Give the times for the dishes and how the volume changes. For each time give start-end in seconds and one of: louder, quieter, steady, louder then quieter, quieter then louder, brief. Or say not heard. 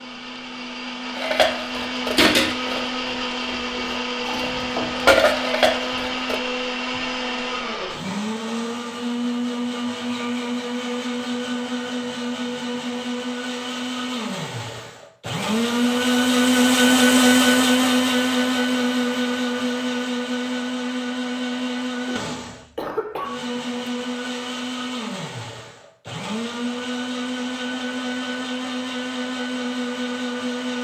1.1-6.3 quieter then louder.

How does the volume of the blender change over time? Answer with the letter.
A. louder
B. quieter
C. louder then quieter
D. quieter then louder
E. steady
C.